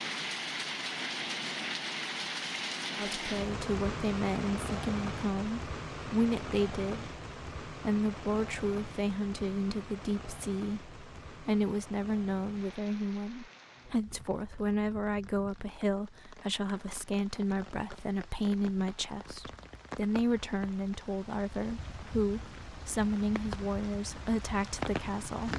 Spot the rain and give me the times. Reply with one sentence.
The rain can be heard from 0.0 to 25.5 s.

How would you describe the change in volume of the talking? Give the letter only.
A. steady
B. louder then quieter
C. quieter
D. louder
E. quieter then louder
A.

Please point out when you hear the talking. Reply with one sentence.
You can hear the talking from 3.0 to 25.5 s.